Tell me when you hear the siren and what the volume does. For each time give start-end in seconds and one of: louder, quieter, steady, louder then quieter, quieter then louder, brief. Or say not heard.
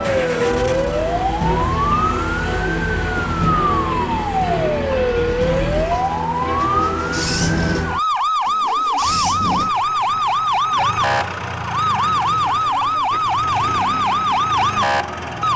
0.0-15.5 steady.